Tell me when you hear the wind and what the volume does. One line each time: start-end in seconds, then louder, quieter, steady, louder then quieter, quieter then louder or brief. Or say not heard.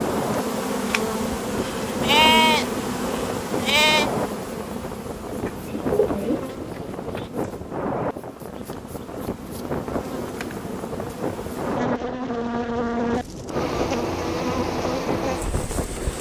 0.0-16.1 steady.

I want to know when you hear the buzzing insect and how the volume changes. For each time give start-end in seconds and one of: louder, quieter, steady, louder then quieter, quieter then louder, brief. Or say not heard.
0.0-16.1 quieter then louder.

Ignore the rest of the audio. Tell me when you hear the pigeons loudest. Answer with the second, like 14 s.
6 s.